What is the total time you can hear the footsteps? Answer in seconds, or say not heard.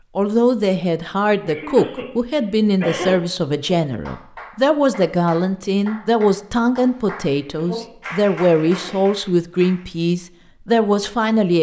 not heard.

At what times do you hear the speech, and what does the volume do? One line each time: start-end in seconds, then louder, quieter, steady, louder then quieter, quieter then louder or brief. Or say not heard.
0.1-11.5 steady.